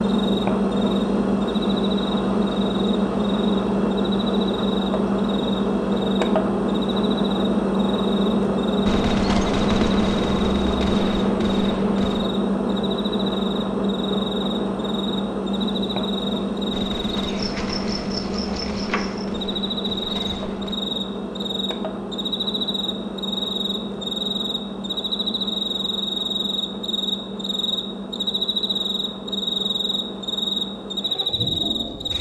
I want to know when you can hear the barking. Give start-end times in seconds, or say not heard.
not heard.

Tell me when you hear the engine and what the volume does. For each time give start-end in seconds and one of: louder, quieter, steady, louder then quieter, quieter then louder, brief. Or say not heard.
0.0-32.1 quieter.